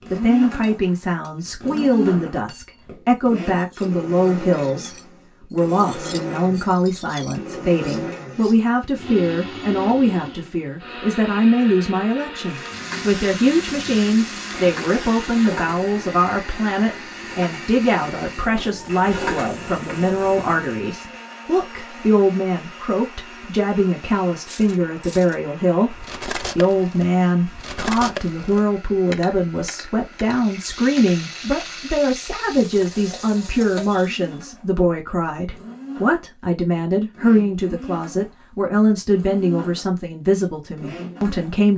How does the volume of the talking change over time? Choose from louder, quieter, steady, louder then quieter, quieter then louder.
steady.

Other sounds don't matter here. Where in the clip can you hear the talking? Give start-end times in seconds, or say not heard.
0.1-41.7.